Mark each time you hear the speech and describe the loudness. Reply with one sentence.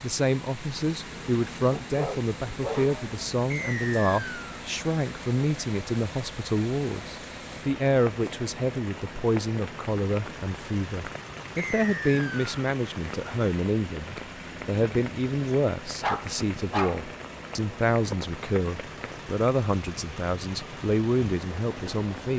You can hear the speech from 0.0 to 22.3 s, at a steady volume.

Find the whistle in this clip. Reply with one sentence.
The whistle can be heard from 3.5 to 4.6 s and from 11.6 to 12.6 s.